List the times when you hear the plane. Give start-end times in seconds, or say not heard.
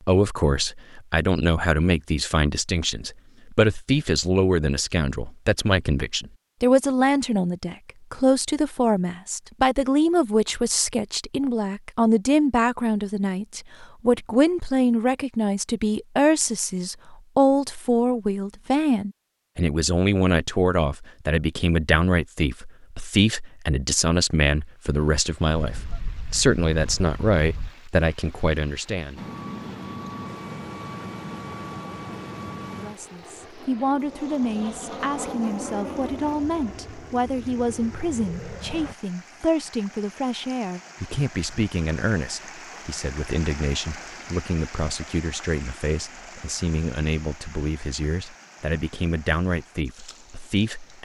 29.1-39.0.